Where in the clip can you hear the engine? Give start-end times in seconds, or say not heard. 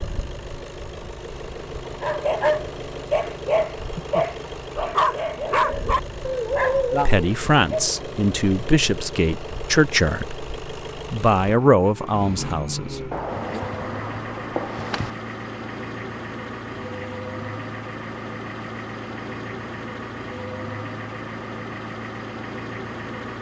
0.0-23.3.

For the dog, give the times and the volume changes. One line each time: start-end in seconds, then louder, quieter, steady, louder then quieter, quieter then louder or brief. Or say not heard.
2.0-7.9 steady.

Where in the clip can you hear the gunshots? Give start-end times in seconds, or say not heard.
13.1-15.1.